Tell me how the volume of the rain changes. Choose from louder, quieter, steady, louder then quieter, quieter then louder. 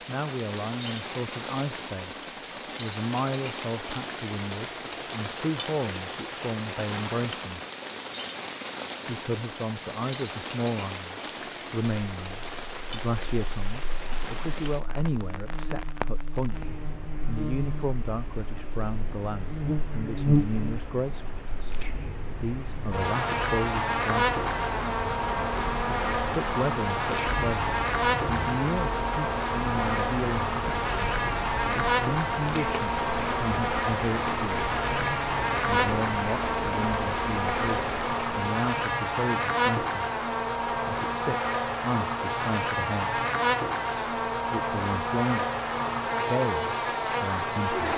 quieter then louder.